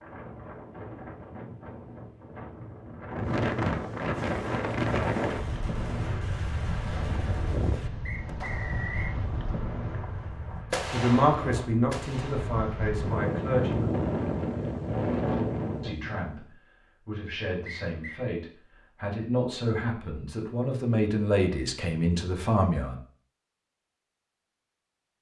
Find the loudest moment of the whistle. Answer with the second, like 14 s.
9 s.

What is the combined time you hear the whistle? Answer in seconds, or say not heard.
2 s.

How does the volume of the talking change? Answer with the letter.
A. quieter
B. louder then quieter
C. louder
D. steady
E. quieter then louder
E.